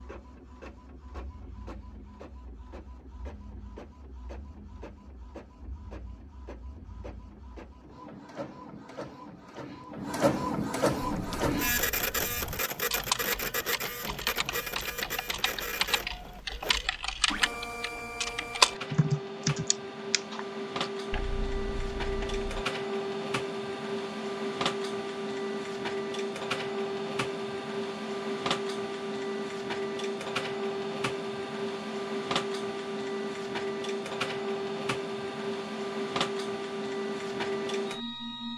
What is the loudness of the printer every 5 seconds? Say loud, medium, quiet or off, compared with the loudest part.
quiet, quiet, loud, medium, loud, loud, loud, loud.